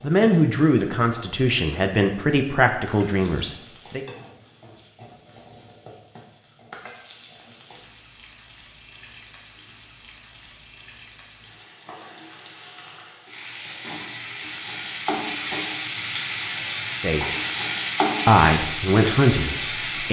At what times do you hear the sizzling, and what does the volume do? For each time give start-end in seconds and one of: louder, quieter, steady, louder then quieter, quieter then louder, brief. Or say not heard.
0.0-20.0 louder.